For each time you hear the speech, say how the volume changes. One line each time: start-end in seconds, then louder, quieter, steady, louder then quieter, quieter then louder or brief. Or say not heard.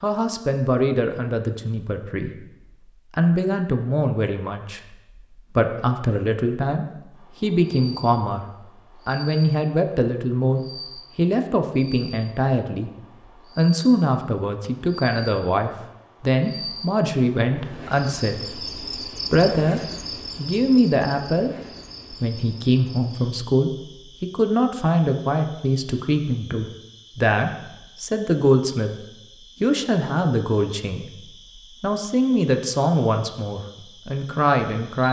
0.0-2.4 brief
3.1-28.9 steady
29.6-35.0 quieter then louder.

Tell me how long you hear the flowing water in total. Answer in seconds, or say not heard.
not heard.